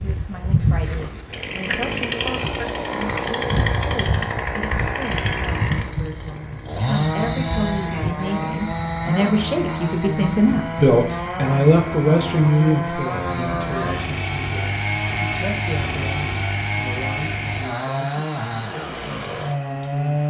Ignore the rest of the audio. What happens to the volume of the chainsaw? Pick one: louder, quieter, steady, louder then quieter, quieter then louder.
steady.